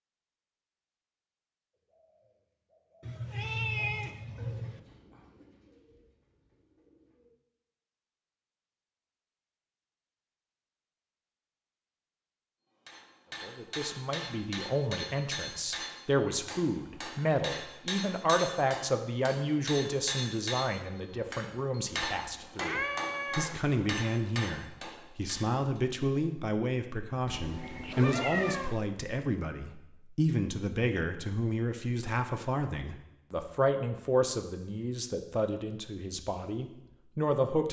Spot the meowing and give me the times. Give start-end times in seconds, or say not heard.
3.0-4.8, 22.6-23.6, 27.2-28.8.